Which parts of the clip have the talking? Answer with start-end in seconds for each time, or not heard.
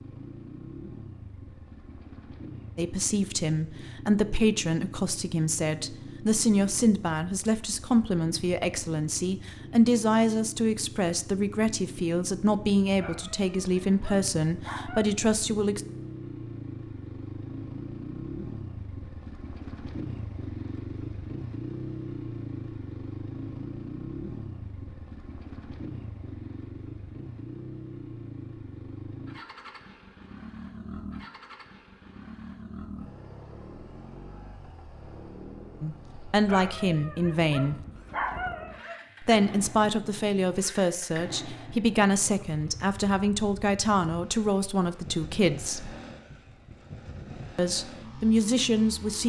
2.8-15.8, 35.8-37.8, 39.2-46.0, 47.5-49.2.